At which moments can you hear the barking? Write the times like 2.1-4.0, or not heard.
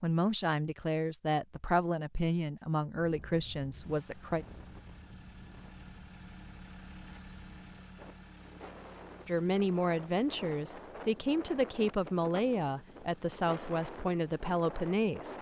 not heard.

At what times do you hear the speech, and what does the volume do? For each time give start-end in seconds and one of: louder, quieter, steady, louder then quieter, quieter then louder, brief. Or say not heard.
0.0-4.5 steady
9.2-15.3 steady.